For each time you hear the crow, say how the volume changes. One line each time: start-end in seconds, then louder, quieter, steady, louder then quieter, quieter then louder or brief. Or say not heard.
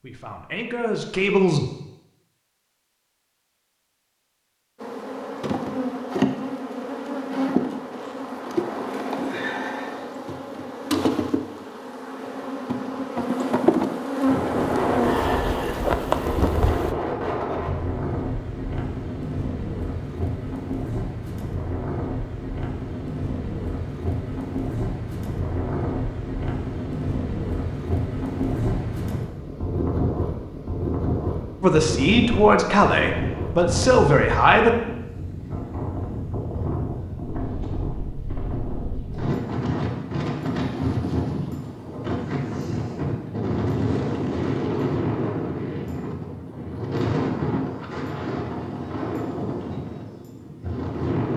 not heard.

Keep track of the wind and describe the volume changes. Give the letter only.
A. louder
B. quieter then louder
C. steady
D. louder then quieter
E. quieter
C.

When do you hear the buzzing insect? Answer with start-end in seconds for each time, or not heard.
4.8-16.9.